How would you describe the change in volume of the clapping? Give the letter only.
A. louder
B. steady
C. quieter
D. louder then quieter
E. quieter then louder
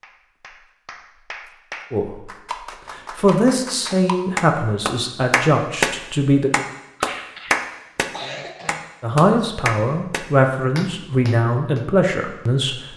D.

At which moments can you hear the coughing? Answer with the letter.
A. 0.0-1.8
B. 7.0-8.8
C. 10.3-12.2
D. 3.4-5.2
B.